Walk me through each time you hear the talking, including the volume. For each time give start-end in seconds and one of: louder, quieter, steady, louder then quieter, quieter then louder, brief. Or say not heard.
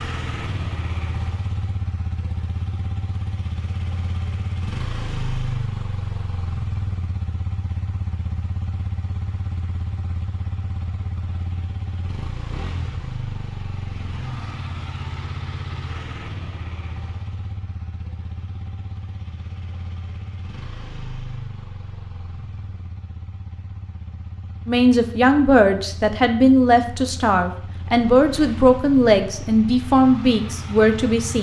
24.6-31.3 steady.